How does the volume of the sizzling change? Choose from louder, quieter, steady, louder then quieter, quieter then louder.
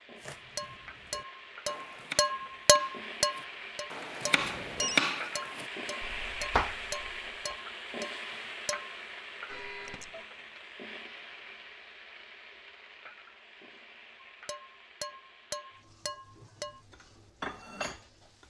louder then quieter.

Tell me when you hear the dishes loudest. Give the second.
3 s.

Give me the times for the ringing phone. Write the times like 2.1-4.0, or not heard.
4.3-5.0, 9.4-10.2.